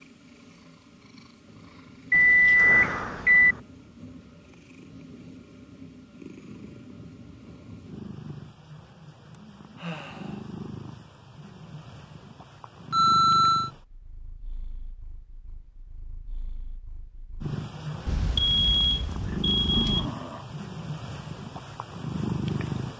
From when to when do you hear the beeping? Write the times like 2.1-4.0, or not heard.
2.1-3.5, 12.9-13.7, 18.1-20.1.